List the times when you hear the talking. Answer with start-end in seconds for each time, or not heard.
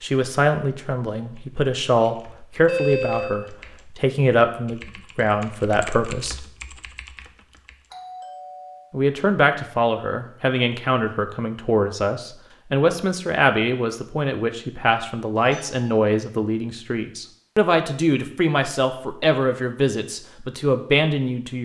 0.0-6.5, 8.9-21.5.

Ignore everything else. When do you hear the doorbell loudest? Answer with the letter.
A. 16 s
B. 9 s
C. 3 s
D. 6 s
C.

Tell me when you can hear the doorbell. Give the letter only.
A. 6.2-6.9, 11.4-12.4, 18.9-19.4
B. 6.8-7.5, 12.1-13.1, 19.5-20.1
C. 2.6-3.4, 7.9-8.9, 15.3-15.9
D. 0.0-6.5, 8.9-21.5
C.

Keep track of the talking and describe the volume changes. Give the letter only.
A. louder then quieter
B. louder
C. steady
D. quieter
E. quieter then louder
C.